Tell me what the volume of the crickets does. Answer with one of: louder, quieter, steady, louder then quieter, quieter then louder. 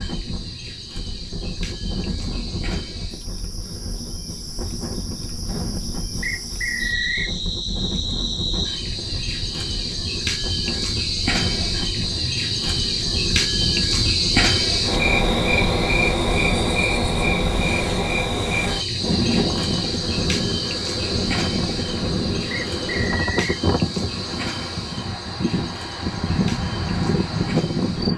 louder then quieter.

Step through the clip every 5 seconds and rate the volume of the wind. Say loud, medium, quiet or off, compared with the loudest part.
medium, medium, medium, loud, loud, loud.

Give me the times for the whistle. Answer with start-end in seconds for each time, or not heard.
6.2-7.3, 22.5-23.6.